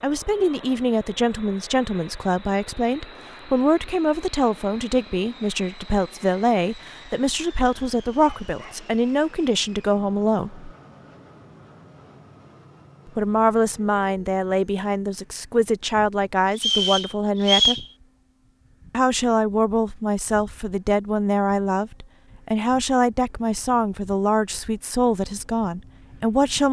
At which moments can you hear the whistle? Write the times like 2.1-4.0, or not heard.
16.6-17.9.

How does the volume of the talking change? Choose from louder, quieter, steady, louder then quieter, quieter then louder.
steady.